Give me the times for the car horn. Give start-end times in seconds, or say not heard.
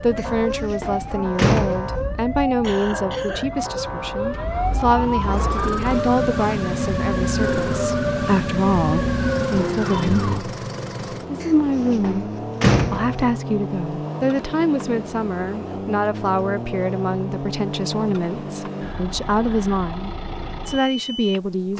not heard.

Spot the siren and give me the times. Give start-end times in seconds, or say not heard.
0.0-10.4.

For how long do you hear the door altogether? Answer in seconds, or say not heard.
4 s.